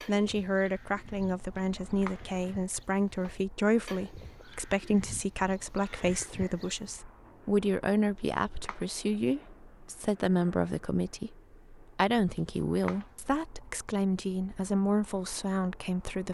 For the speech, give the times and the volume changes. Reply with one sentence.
The speech can be heard from 0.1 to 16.2 s, at a steady volume.